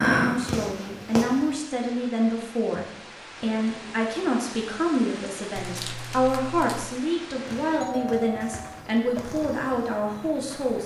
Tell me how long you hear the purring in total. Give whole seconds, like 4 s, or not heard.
5 s.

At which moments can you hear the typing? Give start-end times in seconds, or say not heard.
not heard.